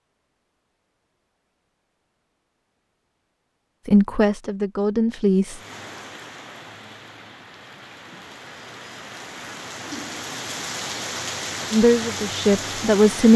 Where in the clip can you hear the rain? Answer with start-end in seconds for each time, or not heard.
5.5-13.3.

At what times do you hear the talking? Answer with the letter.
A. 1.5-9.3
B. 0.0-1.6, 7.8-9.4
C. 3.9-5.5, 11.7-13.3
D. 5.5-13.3
C.